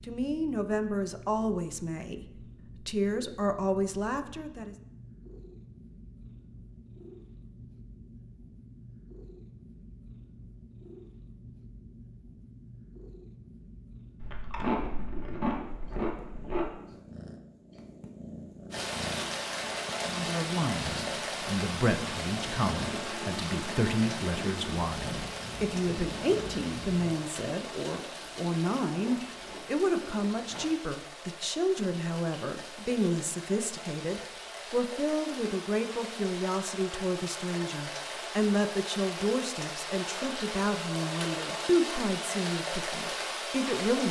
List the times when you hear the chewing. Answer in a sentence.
The chewing can be heard from 14.2 to 16.7 s and from 28.1 to 30.7 s.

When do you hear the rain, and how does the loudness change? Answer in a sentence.
You can hear the rain from 18.7 to 44.0 s, getting quieter then louder.